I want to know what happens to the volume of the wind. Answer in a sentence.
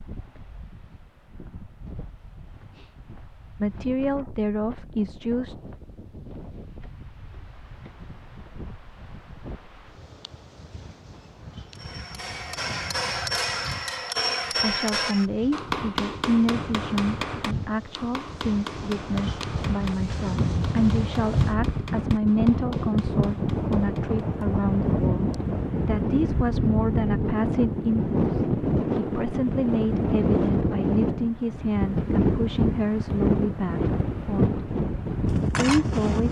The loudness of the wind goes up.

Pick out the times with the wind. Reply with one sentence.
The wind can be heard from 0.0 to 36.2 s.